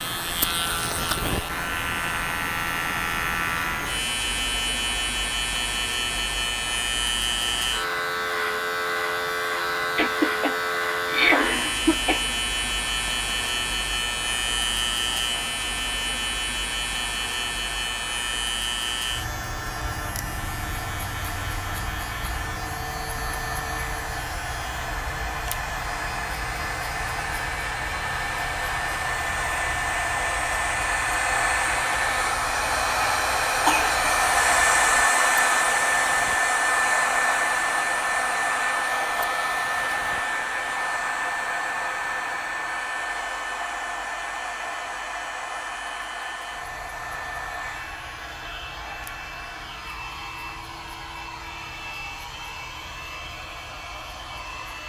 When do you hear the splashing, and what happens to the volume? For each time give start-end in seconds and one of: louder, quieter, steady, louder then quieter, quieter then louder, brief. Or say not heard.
not heard.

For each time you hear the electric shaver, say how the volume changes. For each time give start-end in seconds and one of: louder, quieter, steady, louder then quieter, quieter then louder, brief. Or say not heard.
0.0-54.8 quieter.